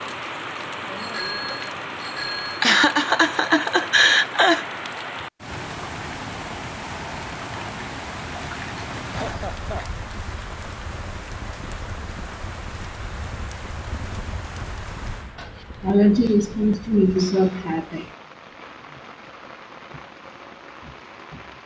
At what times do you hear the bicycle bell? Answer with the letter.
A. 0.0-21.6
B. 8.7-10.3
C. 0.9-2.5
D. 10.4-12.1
C.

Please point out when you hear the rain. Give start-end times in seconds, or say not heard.
0.0-21.6.